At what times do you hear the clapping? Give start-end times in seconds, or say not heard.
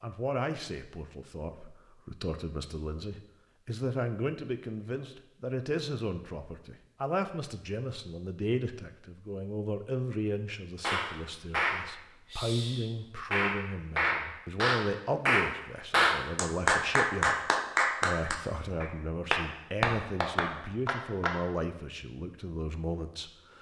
10.8-21.3.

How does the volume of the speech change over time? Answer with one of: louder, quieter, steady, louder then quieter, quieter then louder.
steady.